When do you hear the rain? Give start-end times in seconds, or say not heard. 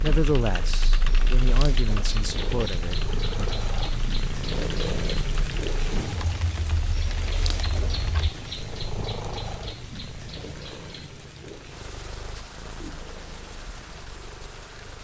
0.0-14.9.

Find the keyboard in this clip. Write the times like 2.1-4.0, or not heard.
0.0-8.3.